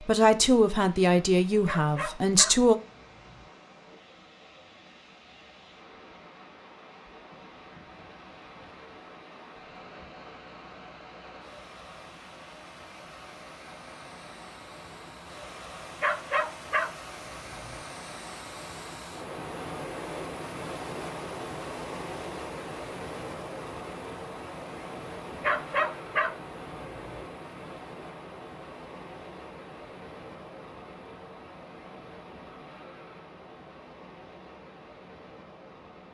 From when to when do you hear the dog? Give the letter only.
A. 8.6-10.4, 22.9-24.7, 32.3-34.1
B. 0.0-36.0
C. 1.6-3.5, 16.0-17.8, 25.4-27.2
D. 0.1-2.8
C.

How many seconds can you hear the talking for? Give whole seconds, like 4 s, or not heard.
3 s.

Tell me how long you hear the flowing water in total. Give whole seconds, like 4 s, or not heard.
36 s.